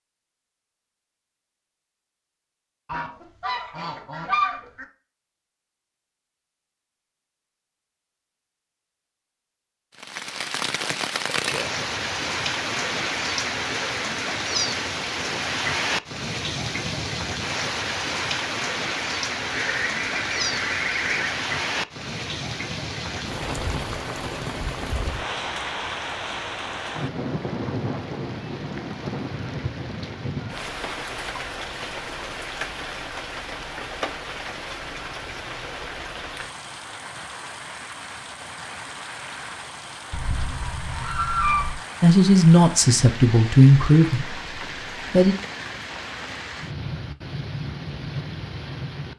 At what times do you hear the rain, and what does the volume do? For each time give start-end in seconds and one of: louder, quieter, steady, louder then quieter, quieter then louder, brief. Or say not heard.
9.9-49.1 quieter.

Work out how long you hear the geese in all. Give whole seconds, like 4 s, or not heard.
6 s.